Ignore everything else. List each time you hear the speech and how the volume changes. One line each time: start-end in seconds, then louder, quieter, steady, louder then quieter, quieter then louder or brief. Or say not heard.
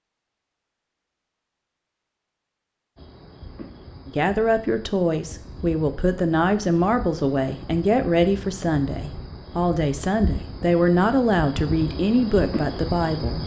4.0-13.4 steady.